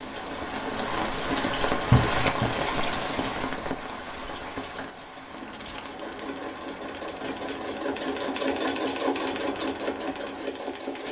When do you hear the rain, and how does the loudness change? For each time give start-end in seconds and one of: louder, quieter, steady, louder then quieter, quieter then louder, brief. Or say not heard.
0.0-11.0 quieter.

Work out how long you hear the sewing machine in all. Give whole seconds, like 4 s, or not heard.
5 s.